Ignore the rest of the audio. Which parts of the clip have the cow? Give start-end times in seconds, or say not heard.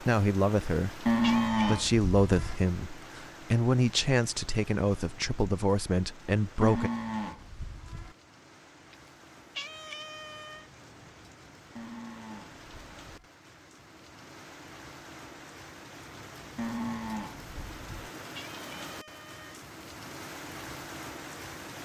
1.1-2.6, 6.6-8.2, 11.8-13.3, 16.6-18.1.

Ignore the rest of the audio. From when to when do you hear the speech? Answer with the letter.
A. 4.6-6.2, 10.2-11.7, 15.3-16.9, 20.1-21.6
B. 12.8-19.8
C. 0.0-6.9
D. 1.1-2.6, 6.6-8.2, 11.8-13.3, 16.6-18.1
C.